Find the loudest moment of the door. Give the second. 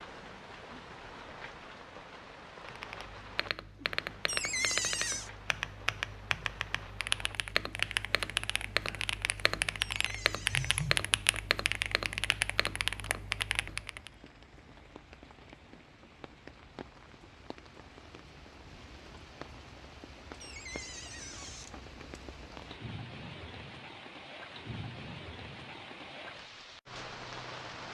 5 s.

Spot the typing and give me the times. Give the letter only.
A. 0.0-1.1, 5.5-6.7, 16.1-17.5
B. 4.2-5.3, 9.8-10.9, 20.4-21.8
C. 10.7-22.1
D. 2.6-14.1
D.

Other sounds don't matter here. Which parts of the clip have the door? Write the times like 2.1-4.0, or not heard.
4.2-5.3, 9.8-10.9, 20.4-21.8.